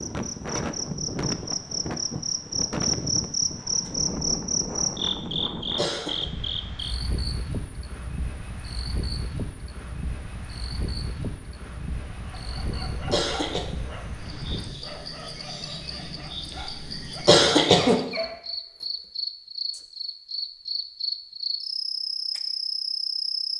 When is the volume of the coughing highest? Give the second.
17 s.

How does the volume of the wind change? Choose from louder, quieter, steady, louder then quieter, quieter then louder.
quieter.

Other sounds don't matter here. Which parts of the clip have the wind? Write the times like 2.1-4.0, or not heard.
0.0-14.8.